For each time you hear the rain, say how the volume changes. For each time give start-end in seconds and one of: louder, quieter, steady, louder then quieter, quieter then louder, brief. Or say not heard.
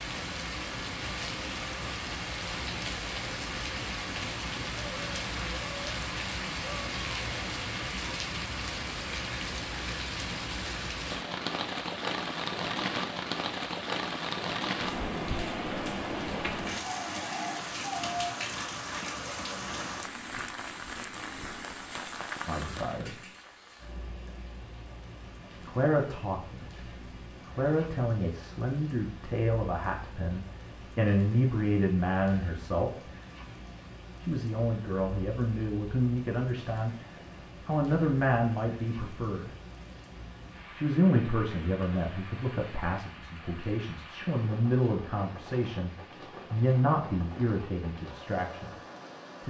0.0-49.4 quieter.